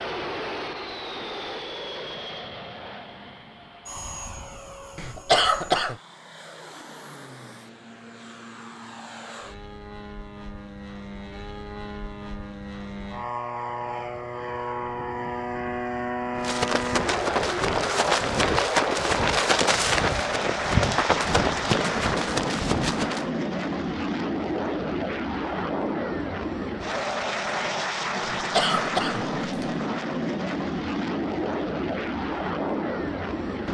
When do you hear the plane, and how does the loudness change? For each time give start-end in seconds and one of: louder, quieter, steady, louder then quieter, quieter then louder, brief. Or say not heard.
0.0-33.6 louder.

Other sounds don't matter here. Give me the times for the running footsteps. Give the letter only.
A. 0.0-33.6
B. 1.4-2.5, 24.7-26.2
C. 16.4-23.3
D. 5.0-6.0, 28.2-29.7
C.